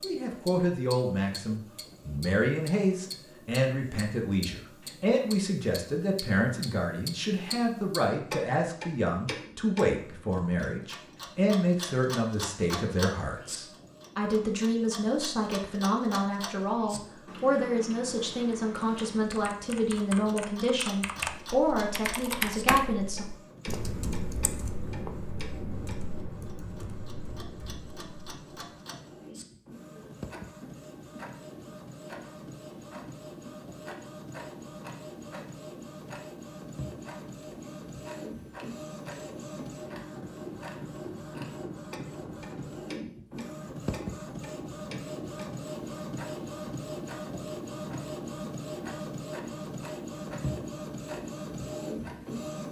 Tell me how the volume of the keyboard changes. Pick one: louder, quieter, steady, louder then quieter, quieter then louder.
louder then quieter.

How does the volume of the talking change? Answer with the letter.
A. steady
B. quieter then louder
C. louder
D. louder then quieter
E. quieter
A.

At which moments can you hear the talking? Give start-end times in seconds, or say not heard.
0.0-23.2.